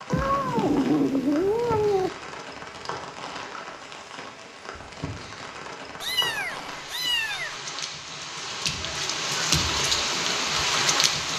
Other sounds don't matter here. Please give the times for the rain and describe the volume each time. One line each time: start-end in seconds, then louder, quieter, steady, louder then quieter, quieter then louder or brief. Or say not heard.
0.0-11.3 louder.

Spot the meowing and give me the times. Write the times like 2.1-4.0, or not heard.
0.1-2.1, 6.0-7.6.